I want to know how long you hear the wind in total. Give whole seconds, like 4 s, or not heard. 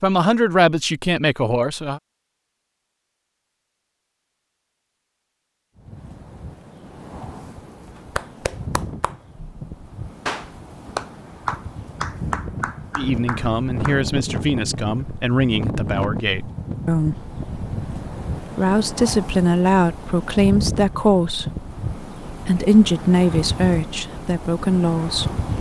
20 s.